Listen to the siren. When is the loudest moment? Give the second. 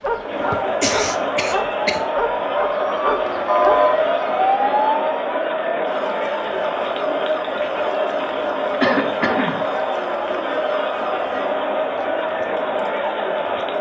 4 s.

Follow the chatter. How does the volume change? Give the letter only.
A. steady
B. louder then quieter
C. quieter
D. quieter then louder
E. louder
A.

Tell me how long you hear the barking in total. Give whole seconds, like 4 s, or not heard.
4 s.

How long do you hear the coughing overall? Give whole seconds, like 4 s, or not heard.
2 s.